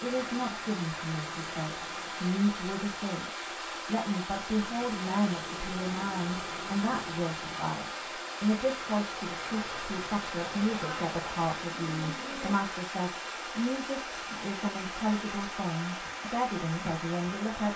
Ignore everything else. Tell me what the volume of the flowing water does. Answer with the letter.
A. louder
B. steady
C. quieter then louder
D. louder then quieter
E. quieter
B.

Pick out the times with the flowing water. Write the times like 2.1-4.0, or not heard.
0.0-17.7.